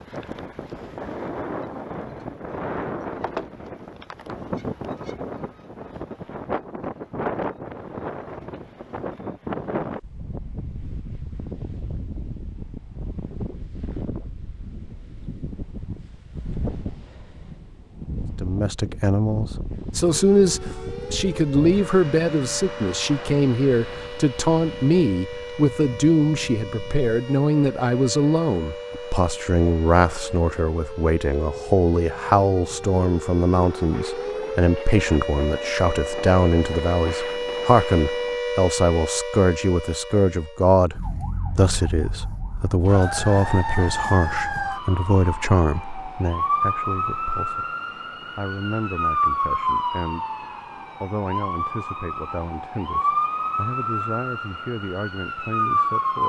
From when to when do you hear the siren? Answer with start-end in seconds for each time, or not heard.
20.0-56.2.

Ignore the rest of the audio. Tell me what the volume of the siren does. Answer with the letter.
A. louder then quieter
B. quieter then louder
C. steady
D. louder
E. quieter
D.